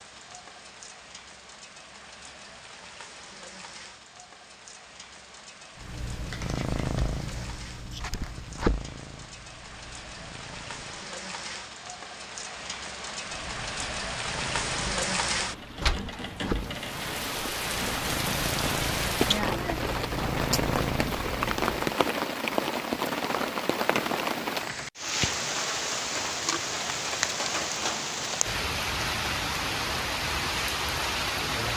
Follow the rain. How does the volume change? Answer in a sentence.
The loudness of the rain goes up.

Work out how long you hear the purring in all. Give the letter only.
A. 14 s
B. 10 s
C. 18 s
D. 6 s
A.